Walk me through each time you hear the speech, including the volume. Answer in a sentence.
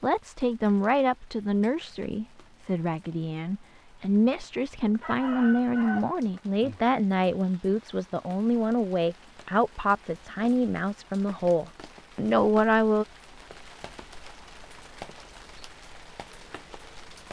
You can hear the speech from 0.0 to 13.1 s, at a steady volume.